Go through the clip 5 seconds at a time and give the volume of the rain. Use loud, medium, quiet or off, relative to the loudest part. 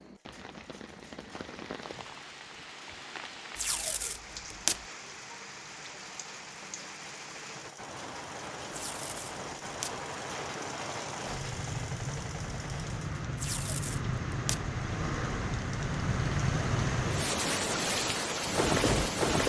quiet, quiet, medium, loud.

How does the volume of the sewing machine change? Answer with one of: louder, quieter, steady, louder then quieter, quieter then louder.
louder.